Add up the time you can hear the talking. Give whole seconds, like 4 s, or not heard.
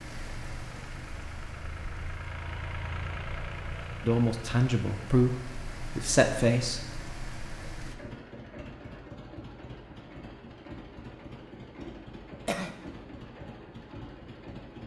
3 s.